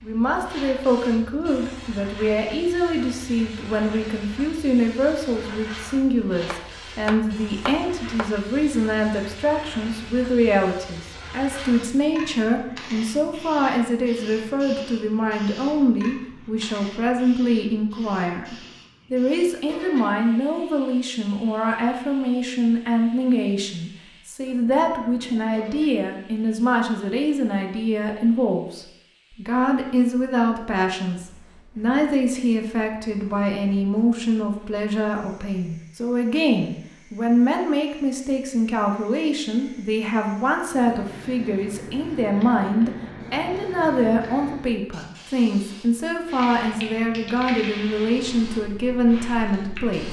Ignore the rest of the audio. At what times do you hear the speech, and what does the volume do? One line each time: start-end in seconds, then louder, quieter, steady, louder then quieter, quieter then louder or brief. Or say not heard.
0.0-50.0 steady.